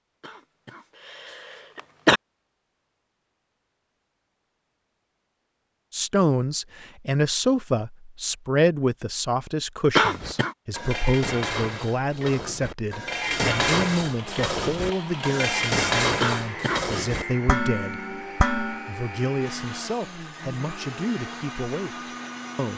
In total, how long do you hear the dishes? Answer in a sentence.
The dishes can be heard for 9 seconds in total.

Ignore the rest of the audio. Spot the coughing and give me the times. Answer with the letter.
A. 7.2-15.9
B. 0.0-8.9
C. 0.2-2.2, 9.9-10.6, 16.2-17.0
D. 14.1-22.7
C.